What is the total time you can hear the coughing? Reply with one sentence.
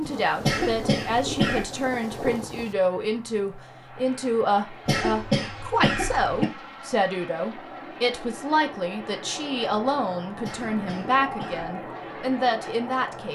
You can hear the coughing for 4 seconds altogether.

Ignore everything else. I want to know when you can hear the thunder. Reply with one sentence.
The thunder can be heard from 0.0 to 2.8 s.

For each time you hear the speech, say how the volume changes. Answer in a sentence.
You can hear the speech from 0.0 to 13.2 s, at a steady volume.